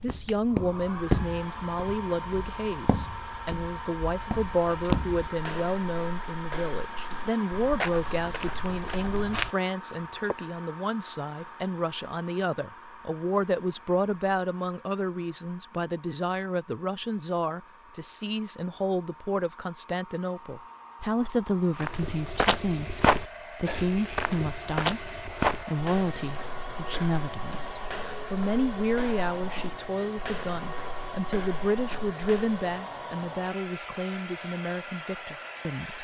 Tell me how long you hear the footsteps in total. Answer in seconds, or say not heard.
21 s.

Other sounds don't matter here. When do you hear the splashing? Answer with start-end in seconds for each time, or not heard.
not heard.